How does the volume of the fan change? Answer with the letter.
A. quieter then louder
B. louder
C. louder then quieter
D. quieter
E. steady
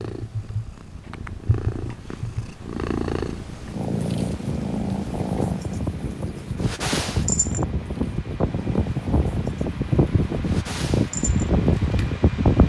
B.